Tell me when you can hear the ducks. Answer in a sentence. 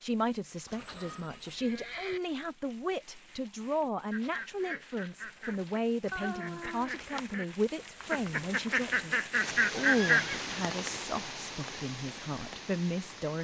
You can hear the ducks from 4.1 to 10.2 s.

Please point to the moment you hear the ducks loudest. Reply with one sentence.
The volume of the ducks peaks at 10 seconds.